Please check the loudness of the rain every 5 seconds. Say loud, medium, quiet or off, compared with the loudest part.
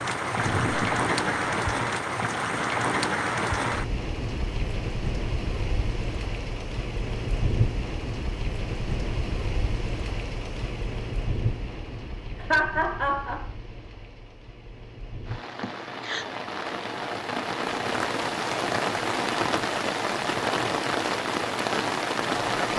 loud, medium, medium, loud, loud.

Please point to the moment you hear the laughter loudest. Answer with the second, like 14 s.
13 s.